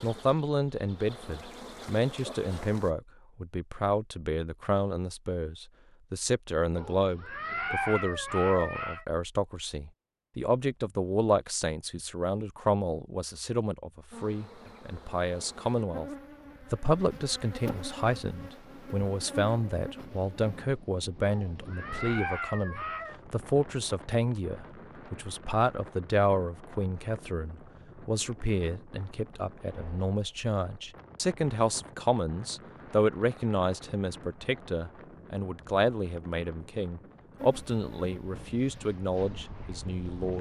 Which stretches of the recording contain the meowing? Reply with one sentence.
You can hear the meowing from 6.8 to 9.1 s and from 21.2 to 23.1 s.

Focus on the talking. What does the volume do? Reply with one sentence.
The loudness of the talking stays about the same.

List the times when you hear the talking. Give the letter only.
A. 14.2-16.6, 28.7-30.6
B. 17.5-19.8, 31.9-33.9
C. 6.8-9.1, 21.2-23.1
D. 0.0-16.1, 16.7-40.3
D.